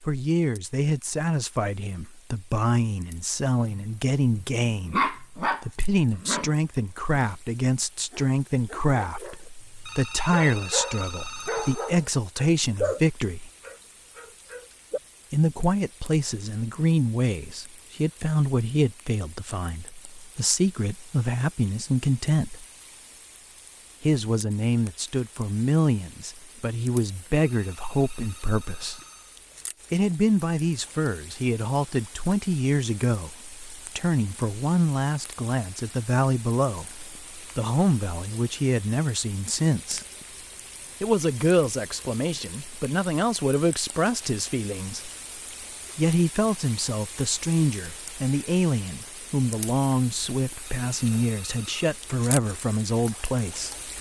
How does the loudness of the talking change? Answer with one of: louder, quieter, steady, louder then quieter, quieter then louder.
steady.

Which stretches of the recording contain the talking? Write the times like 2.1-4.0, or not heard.
0.0-13.5, 15.3-22.6, 24.0-29.0, 29.9-40.0, 41.0-45.1, 46.0-53.8.